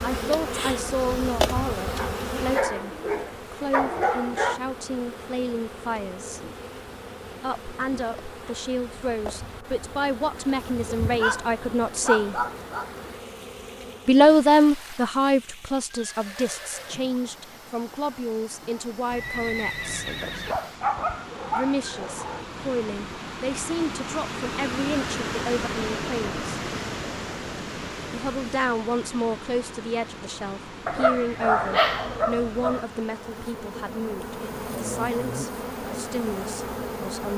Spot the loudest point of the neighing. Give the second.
20 s.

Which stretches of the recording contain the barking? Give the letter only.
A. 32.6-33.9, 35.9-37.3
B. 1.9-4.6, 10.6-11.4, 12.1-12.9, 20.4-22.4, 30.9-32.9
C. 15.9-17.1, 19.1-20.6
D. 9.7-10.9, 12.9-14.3
B.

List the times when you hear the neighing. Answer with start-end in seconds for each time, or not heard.
15.9-17.1, 19.1-20.6.